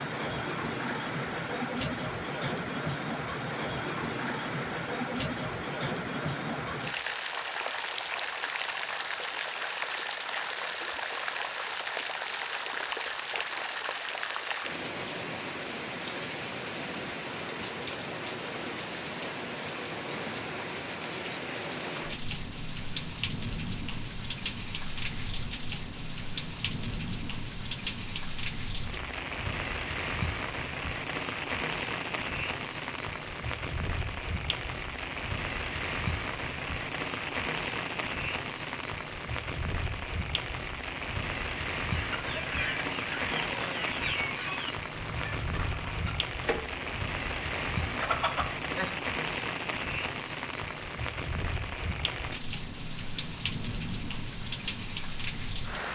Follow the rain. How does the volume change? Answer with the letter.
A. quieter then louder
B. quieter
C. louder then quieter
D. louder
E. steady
E.